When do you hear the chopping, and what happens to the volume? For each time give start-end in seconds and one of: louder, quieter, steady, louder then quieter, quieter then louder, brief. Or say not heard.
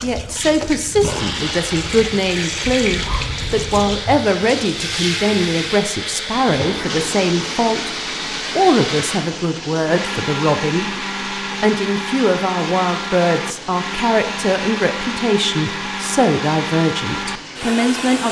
not heard.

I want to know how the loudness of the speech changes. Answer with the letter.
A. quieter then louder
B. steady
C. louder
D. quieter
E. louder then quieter
B.